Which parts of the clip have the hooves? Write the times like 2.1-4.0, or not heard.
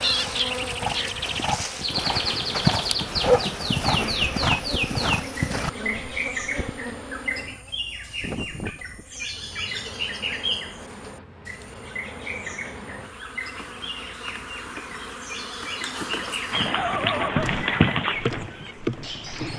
0.0-5.7, 16.5-19.5.